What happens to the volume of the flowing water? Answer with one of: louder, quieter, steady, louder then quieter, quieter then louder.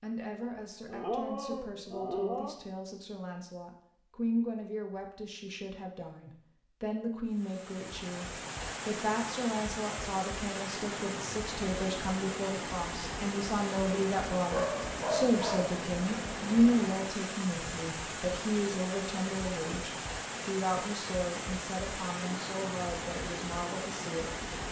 steady.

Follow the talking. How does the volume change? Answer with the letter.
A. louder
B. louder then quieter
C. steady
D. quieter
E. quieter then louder
B.